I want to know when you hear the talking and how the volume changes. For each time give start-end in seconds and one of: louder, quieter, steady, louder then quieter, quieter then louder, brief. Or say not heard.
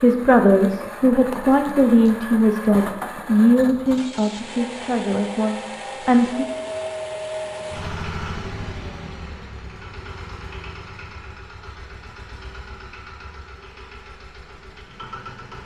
0.0-6.5 quieter.